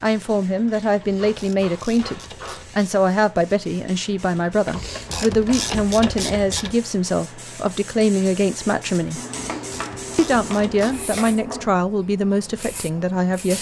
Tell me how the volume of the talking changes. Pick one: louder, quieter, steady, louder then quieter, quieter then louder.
steady.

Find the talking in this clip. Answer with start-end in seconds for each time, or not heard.
0.0-9.2, 10.2-13.5.